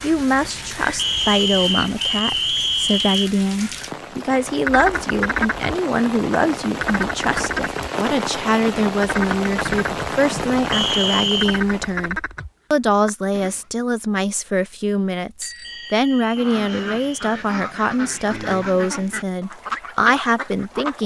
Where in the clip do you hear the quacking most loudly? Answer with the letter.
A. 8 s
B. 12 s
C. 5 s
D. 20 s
C.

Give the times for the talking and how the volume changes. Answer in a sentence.
You can hear the talking from 0.0 to 21.0 s, at a steady volume.